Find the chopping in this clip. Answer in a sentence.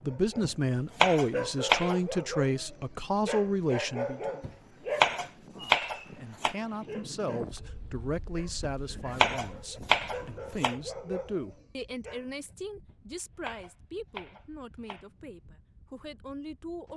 The chopping can be heard from 0.4 to 1.9 s, from 4.4 to 6.5 s, from 8.6 to 10.8 s and from 12.8 to 15.1 s.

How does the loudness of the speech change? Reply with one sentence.
The loudness of the speech goes down.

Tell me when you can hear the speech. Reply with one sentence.
You can hear the speech from 0.0 to 4.2 s and from 5.5 to 16.9 s.